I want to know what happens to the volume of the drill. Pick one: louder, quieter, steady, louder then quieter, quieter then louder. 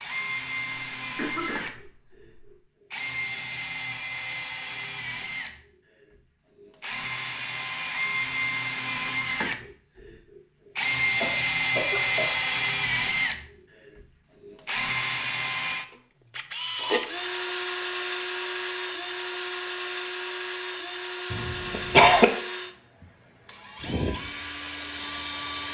louder then quieter.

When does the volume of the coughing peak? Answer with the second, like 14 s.
22 s.